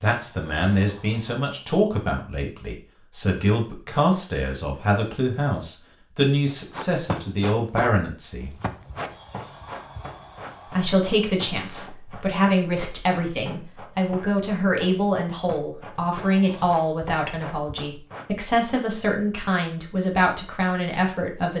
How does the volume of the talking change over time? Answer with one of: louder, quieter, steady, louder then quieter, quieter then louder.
steady.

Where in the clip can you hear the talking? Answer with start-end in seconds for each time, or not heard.
0.0-8.6, 10.7-21.5.